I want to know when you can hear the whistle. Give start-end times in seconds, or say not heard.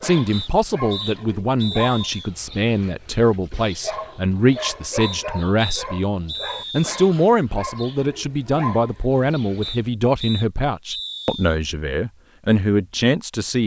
0.3-2.3, 5.0-7.0, 9.6-11.6.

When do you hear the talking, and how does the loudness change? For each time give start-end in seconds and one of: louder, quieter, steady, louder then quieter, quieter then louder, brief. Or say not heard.
0.0-13.6 steady.